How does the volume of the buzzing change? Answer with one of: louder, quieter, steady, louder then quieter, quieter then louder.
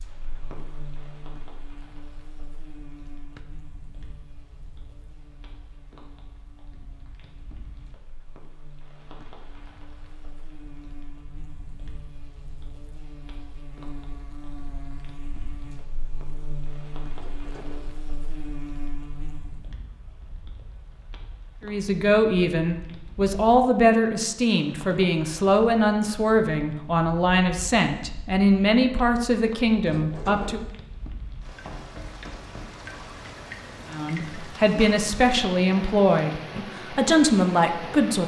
quieter then louder.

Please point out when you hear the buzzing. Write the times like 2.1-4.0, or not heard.
0.0-19.8.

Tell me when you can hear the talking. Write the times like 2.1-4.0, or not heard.
21.6-30.6, 33.9-38.2.